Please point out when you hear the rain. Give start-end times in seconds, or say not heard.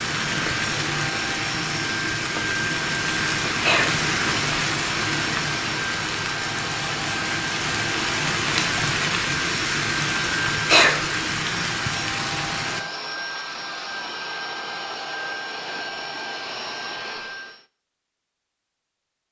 0.0-12.8.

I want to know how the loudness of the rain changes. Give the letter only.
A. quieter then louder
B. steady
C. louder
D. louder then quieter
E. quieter
B.